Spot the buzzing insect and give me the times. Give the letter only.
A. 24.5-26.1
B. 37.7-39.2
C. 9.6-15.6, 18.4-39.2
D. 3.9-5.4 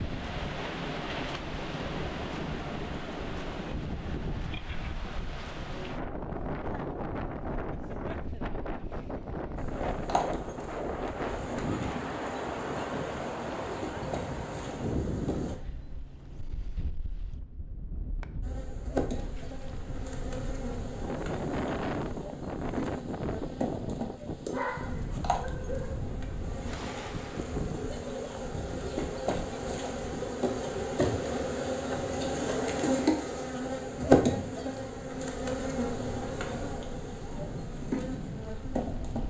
C.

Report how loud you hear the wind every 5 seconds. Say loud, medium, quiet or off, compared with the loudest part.
loud, loud, loud, medium, loud, medium, medium, medium.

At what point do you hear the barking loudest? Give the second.
25 s.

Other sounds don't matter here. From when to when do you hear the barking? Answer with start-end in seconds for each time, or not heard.
24.5-26.1.